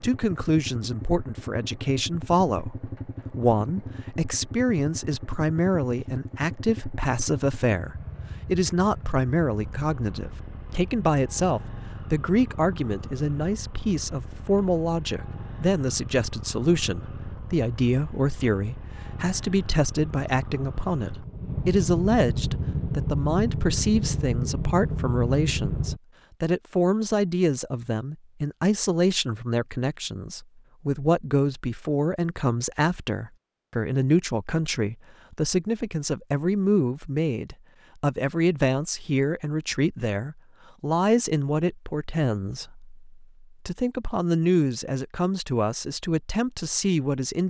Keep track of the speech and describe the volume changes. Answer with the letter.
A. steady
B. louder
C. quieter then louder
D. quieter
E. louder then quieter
A.